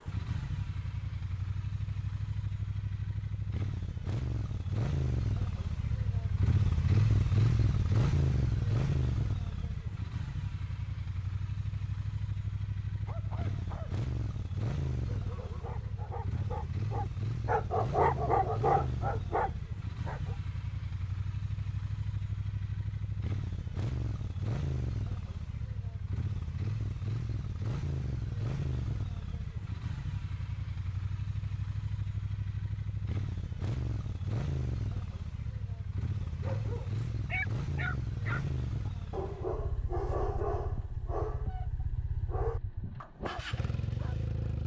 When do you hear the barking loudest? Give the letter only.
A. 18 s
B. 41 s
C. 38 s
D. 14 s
A.